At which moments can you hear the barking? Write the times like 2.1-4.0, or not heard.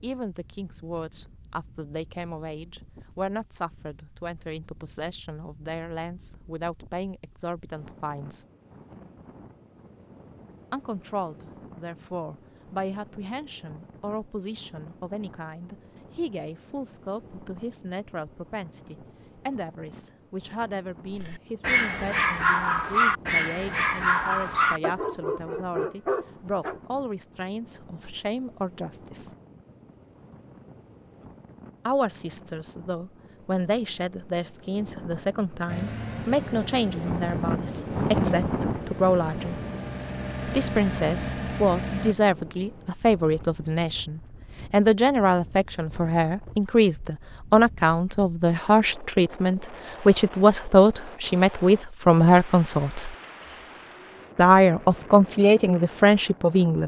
21.1-26.8.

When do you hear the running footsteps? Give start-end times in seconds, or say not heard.
not heard.